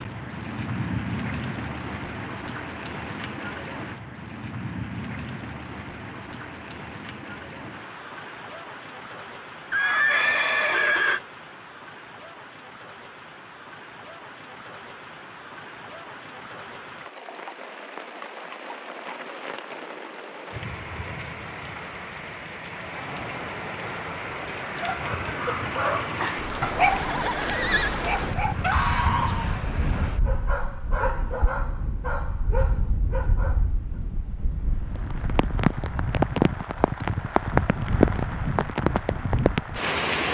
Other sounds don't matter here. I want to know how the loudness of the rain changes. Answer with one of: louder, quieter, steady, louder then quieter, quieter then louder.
quieter then louder.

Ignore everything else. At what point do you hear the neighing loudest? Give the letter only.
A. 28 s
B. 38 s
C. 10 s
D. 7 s
C.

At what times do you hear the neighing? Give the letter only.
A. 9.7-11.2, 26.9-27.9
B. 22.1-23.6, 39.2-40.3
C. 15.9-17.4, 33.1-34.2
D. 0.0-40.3
A.